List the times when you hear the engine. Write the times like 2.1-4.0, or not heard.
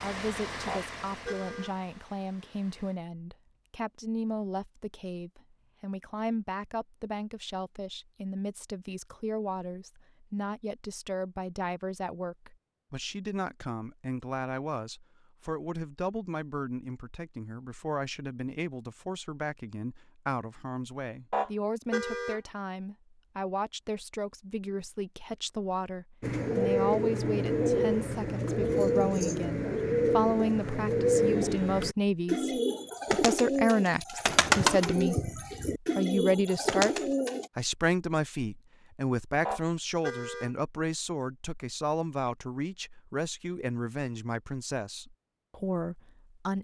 0.0-3.0.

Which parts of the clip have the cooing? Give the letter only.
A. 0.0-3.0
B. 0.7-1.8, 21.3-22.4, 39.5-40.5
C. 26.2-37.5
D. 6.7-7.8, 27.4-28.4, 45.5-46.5
C.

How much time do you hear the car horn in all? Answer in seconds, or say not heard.
3 s.